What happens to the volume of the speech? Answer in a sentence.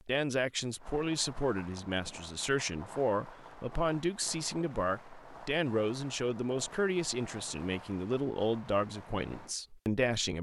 The volume of the speech stays about the same.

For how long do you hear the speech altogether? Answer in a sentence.
The speech can be heard for 10 seconds in total.